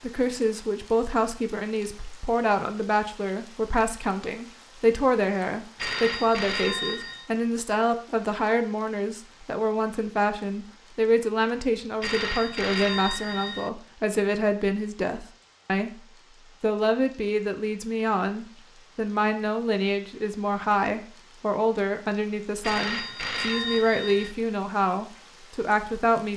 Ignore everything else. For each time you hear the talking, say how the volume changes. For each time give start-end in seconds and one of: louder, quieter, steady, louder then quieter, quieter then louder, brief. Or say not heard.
0.0-15.9 steady
16.6-26.3 steady.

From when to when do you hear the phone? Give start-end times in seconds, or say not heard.
5.8-7.3, 12.0-13.7, 22.6-24.4.